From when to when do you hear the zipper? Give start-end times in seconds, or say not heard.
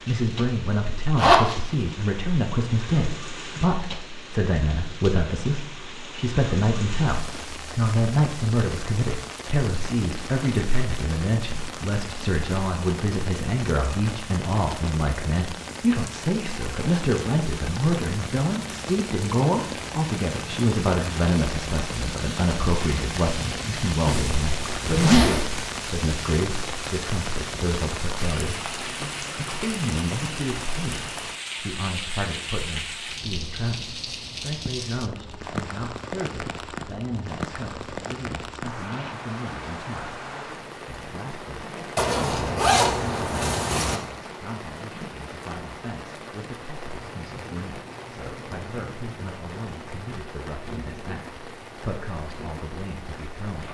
1.1-1.6, 24.1-25.6, 42.0-44.0.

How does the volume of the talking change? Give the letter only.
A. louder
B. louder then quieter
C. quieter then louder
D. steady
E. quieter
E.